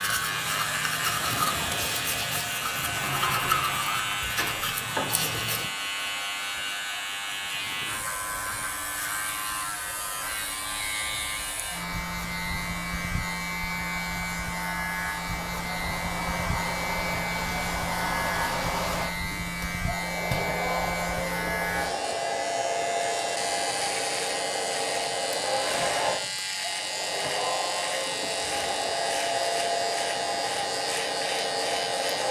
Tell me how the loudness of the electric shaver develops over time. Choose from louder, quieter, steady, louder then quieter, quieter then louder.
steady.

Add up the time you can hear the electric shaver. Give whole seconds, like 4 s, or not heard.
32 s.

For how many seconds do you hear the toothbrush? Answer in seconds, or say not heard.
6 s.